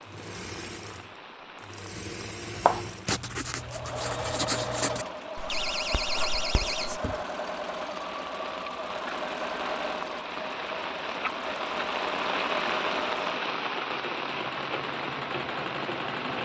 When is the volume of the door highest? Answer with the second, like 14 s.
6 s.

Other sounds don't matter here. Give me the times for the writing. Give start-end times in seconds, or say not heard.
2.5-7.0.